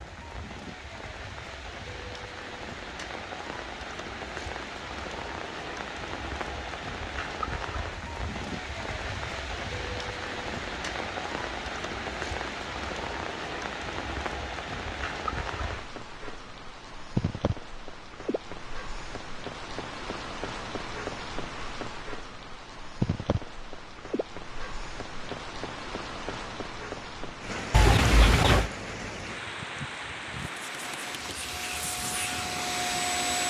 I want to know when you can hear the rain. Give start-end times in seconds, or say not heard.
0.0-33.4.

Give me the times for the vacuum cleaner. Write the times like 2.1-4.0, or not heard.
30.4-33.4.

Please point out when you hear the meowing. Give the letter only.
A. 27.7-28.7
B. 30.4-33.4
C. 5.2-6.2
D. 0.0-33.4
A.